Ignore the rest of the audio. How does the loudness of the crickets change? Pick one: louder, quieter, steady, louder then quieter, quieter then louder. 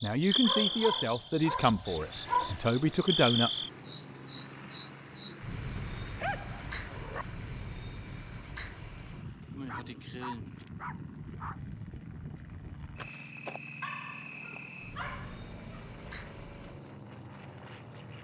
quieter.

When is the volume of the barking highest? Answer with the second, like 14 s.
2 s.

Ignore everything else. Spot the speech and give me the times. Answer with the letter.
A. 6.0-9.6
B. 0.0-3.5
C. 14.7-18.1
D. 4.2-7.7
B.